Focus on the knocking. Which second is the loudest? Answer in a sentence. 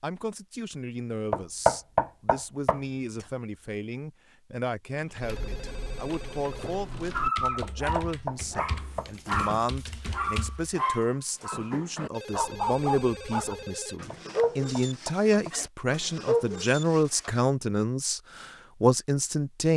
The volume of the knocking peaks at 2 seconds.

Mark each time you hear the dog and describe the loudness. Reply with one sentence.
You can hear the dog from 7.1 to 17.4 s, at a steady volume.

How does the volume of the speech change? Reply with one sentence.
The loudness of the speech goes up.